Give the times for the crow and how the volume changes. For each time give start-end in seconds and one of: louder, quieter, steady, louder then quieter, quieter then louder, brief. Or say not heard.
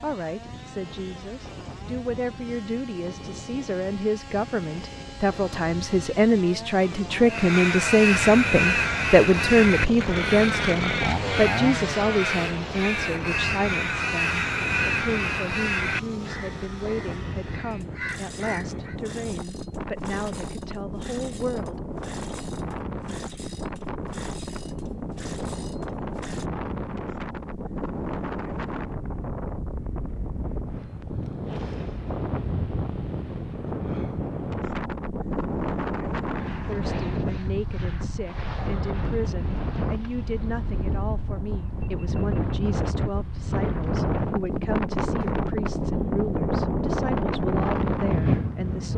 7.2-18.9 quieter.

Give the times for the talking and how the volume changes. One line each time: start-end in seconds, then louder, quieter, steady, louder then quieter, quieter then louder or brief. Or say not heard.
0.0-21.8 louder then quieter
36.6-48.9 steady.